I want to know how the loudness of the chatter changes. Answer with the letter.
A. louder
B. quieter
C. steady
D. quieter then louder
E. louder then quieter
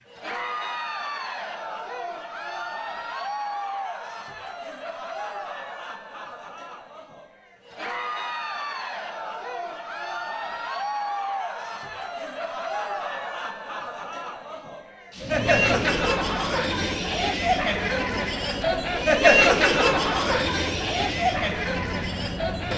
A.